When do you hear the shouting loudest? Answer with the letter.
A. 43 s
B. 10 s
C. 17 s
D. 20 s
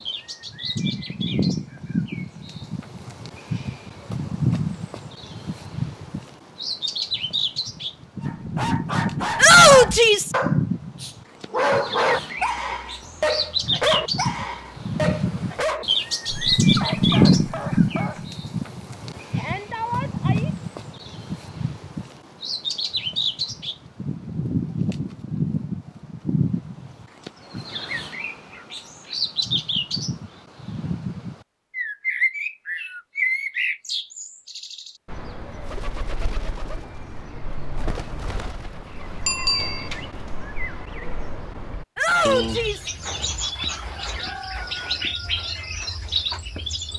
B.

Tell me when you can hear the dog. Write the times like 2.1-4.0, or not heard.
8.2-18.2.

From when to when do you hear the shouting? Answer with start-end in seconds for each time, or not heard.
9.3-10.3, 19.3-20.5, 42.0-42.9.